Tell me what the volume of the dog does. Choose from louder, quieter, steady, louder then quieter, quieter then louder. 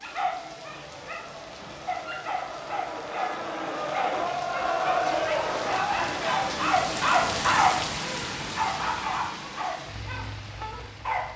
louder then quieter.